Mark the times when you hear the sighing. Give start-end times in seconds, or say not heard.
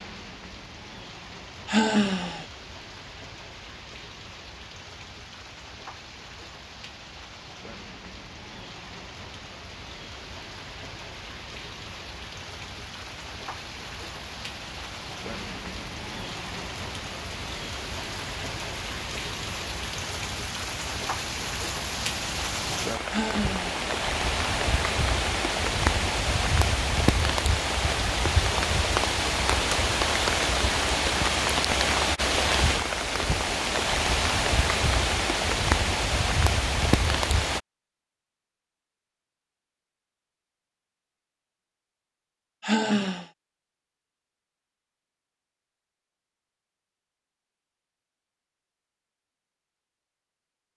1.6-2.5, 23.1-23.8, 42.6-43.2.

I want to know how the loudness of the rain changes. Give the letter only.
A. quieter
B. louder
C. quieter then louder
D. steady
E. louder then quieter
B.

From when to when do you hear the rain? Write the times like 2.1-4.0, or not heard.
0.0-37.6.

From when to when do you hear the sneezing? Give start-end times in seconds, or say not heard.
not heard.